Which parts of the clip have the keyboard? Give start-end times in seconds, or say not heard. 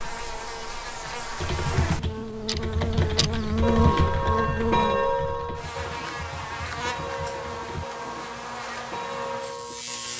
1.4-7.8.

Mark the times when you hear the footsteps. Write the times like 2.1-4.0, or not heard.
not heard.